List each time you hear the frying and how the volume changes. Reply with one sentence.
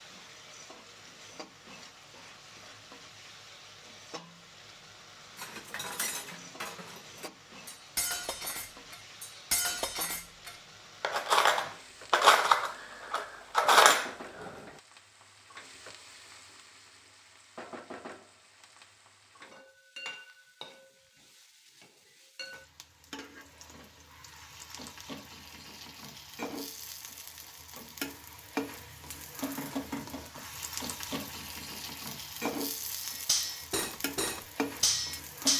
You can hear the frying from 0.0 to 35.5 s, getting louder.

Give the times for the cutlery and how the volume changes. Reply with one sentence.
You can hear the cutlery from 5.3 to 14.7 s, getting louder; and briefly from 33.0 to 35.5 s.